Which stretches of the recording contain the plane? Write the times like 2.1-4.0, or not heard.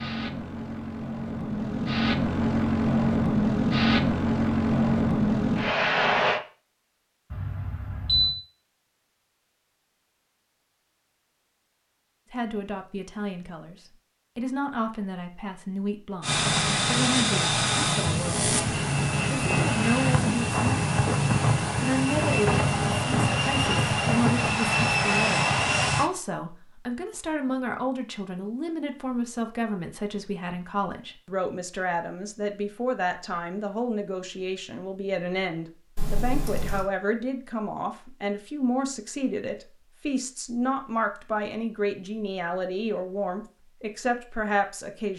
0.0-6.4, 16.2-26.1.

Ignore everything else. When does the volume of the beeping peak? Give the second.
8 s.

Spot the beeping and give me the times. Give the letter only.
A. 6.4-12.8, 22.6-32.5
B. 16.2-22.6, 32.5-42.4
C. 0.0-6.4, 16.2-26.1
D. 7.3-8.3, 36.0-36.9
D.